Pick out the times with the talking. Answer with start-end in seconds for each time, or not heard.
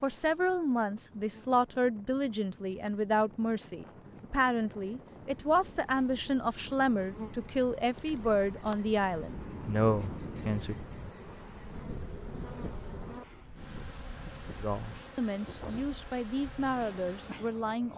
0.0-10.8, 14.6-17.9.